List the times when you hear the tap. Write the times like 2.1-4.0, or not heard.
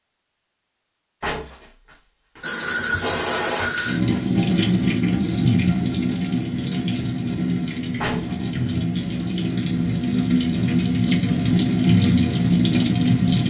2.4-13.4.